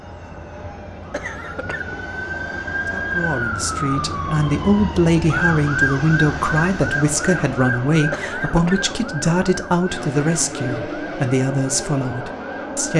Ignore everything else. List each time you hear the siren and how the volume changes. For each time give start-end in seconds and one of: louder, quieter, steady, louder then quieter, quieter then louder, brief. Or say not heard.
0.0-12.9 louder then quieter.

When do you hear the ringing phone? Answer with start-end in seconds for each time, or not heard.
not heard.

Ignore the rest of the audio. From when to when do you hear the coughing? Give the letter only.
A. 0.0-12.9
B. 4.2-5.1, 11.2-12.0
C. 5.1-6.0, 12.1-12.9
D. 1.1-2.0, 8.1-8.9
D.